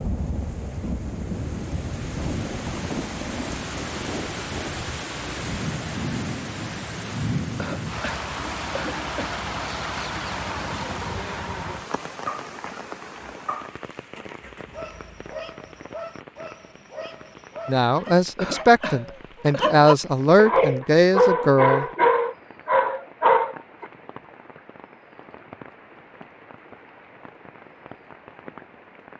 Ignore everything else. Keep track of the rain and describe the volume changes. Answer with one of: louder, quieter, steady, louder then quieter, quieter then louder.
quieter.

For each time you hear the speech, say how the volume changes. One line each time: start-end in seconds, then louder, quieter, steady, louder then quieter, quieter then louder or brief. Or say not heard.
17.6-21.9 quieter then louder.